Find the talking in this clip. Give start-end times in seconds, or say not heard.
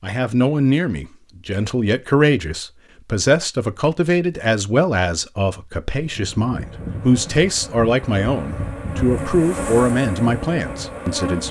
0.0-11.4.